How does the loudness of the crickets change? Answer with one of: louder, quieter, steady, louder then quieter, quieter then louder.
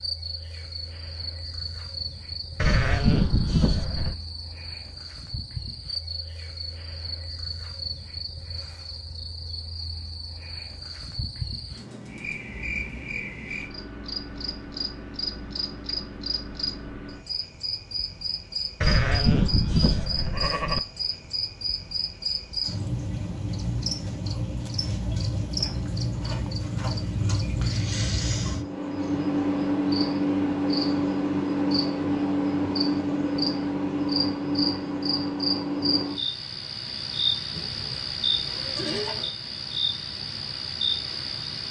louder.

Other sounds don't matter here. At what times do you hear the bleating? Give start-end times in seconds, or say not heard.
2.5-4.2, 18.8-20.8, 37.5-39.1.